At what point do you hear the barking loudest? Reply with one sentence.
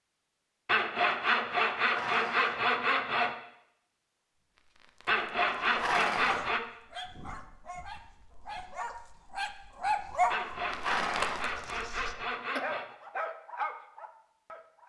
The volume of the barking peaks at 10 seconds.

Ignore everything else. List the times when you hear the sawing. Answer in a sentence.
You can hear the sawing from 0.7 to 3.4 s, from 5.0 to 6.6 s and from 10.3 to 12.8 s.